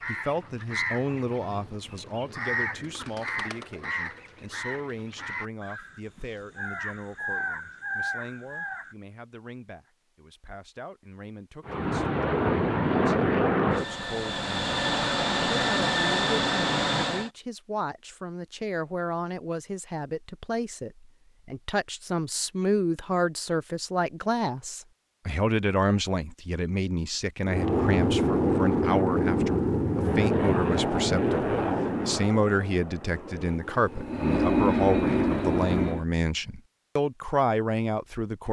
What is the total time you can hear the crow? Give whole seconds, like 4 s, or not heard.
9 s.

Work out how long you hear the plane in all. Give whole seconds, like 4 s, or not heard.
14 s.